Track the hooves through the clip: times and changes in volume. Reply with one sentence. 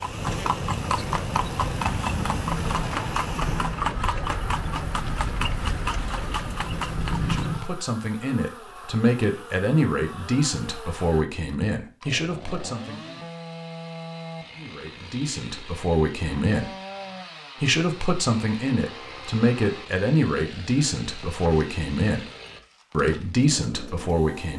The hooves can be heard from 0.0 to 7.7 s, at a steady volume.